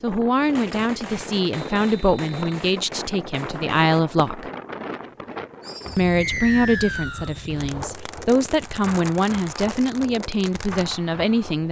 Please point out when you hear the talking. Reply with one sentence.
You can hear the talking from 0.0 to 4.5 s and from 6.0 to 11.6 s.